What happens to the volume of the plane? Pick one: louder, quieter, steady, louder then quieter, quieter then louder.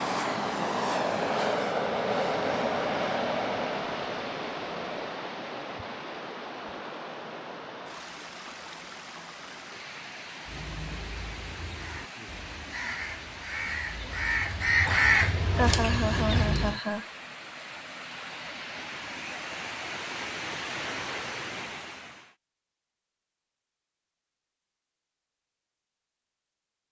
quieter.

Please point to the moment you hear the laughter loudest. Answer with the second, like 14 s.
16 s.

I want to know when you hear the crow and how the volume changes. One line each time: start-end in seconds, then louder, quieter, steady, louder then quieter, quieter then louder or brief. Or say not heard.
10.4-16.8 louder then quieter.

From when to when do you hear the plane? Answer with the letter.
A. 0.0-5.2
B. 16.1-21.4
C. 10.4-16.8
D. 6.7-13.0
A.